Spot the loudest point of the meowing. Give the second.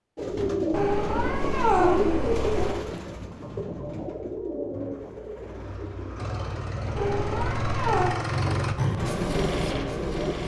2 s.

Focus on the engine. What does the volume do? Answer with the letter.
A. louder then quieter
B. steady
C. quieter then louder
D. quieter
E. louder
E.